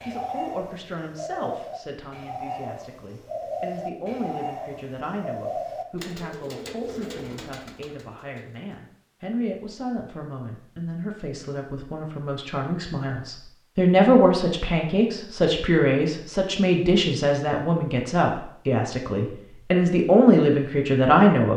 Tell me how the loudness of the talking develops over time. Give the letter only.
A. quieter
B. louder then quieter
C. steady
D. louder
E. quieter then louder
D.